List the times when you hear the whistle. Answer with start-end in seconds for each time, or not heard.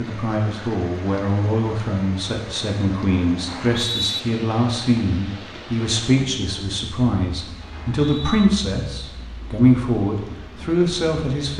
3.5-4.2, 7.9-8.5.